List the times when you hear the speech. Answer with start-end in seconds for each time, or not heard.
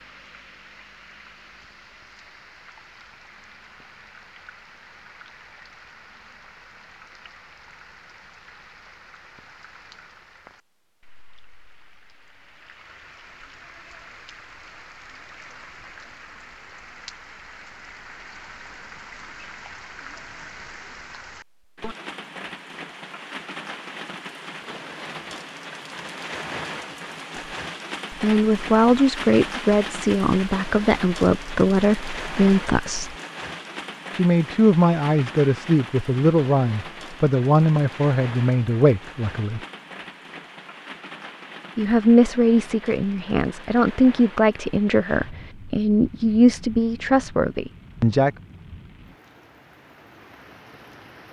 28.1-33.1, 34.1-39.6, 41.8-48.3.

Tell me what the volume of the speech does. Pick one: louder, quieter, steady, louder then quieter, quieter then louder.
steady.